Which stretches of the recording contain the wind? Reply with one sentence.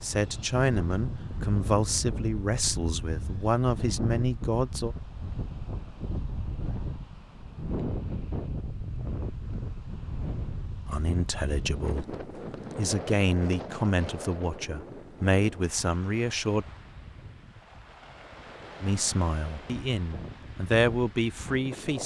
The wind can be heard from 0.0 to 22.0 s.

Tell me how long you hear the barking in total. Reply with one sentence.
You can't hear the barking here.